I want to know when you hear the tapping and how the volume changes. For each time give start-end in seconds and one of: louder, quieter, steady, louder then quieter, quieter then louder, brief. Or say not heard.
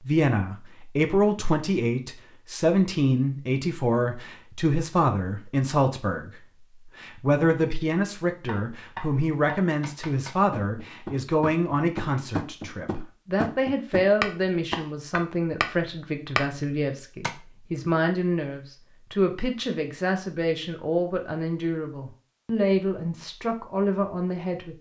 8.4-17.3 louder.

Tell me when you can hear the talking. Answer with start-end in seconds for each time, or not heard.
0.0-24.7.